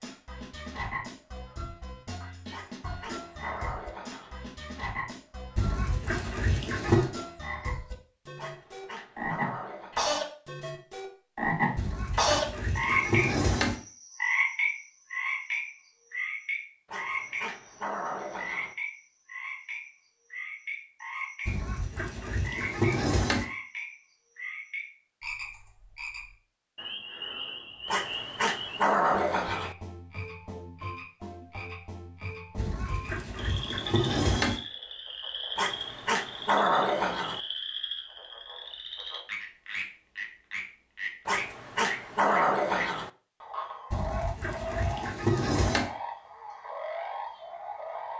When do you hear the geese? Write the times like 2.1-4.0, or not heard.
5.5-7.1, 11.8-13.8, 21.4-23.4, 32.5-34.6, 43.9-45.9.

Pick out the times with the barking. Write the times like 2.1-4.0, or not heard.
2.5-4.3, 8.3-10.0, 16.9-18.8, 27.9-29.8, 35.5-37.4, 41.2-43.1.